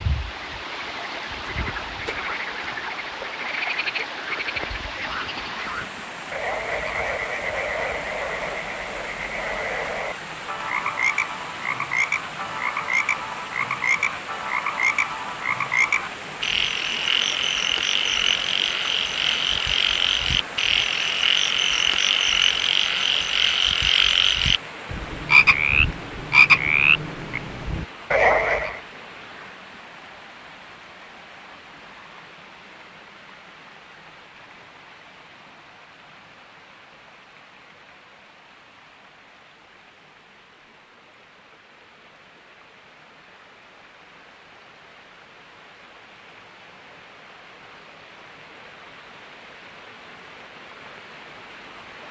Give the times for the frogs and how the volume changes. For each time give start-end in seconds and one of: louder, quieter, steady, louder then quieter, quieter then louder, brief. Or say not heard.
0.0-28.8 louder.